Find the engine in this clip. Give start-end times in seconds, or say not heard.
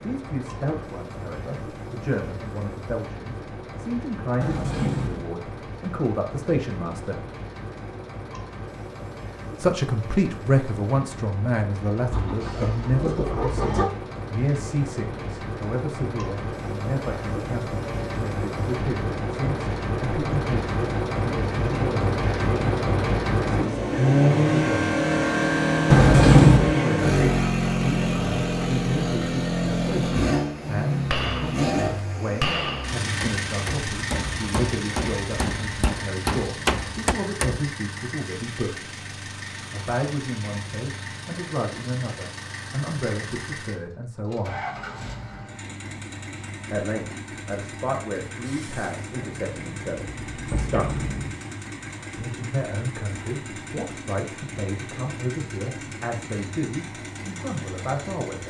0.0-58.4.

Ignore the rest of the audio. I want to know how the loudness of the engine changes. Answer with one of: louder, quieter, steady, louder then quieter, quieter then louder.
louder then quieter.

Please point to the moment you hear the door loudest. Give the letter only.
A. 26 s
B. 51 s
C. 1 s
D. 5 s
A.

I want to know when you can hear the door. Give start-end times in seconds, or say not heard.
4.4-5.2, 25.9-26.7, 49.2-51.3.